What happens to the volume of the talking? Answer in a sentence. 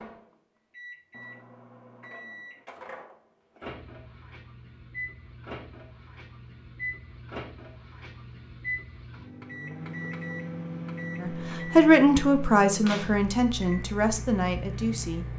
The volume of the talking goes down.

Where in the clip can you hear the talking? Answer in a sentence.
The talking can be heard from 11.2 to 15.3 s.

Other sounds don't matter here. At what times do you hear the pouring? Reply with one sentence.
The pouring can't be heard in this clip.